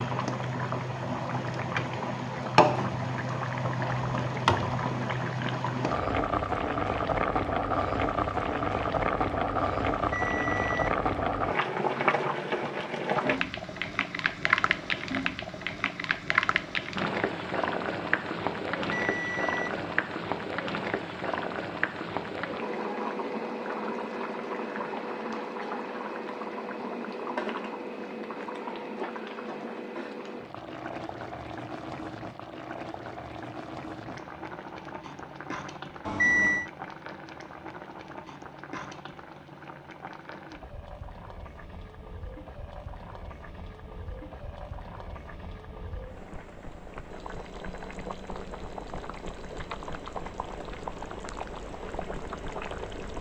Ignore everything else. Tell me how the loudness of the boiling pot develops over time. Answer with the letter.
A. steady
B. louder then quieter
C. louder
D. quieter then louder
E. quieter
E.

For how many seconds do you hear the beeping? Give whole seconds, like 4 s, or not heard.
3 s.